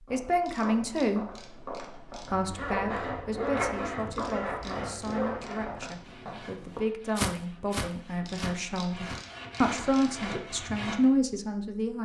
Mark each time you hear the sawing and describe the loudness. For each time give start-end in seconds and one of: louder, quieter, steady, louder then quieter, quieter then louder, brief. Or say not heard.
2.3-11.1 quieter then louder.